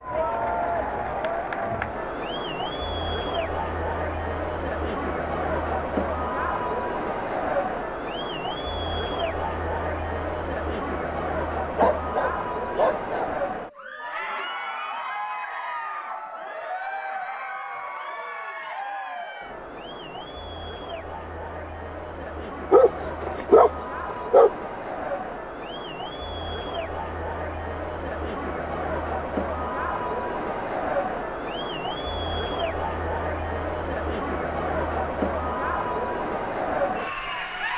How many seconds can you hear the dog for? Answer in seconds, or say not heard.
3 s.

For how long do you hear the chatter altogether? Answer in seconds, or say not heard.
38 s.